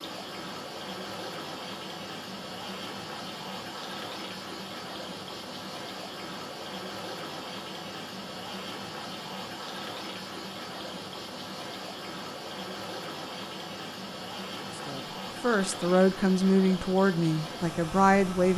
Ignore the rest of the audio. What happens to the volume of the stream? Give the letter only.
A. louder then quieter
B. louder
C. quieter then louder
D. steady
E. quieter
D.